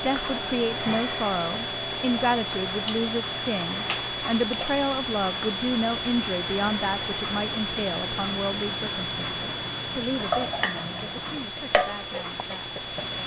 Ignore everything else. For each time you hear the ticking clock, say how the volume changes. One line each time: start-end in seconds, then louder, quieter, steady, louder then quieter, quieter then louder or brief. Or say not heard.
0.0-13.2 steady.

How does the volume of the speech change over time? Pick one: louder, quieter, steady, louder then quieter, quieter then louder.
quieter.